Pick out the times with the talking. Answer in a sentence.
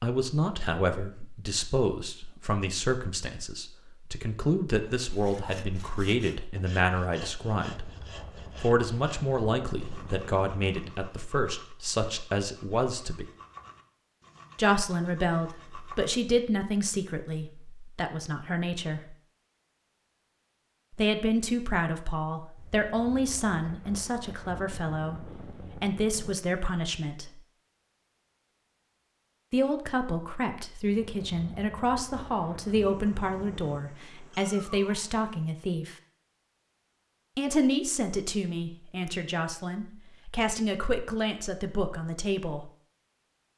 You can hear the talking from 0.0 to 7.9 s, from 8.6 to 13.3 s, from 14.6 to 19.1 s, from 20.9 to 27.4 s, from 29.5 to 36.0 s and from 37.4 to 42.7 s.